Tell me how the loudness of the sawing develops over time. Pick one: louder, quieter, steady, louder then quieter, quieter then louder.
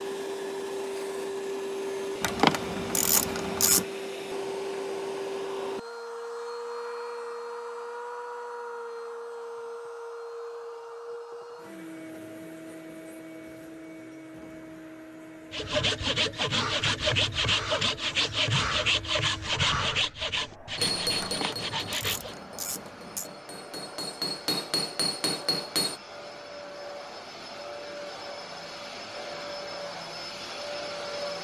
quieter.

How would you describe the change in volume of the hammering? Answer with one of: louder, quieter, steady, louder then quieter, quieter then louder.
quieter then louder.